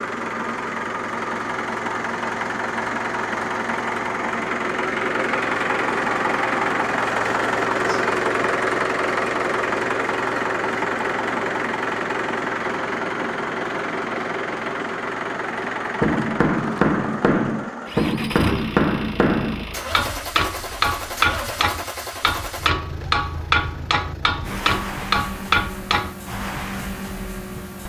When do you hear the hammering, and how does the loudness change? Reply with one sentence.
The hammering can be heard from 16.0 to 26.1 s, at a steady volume.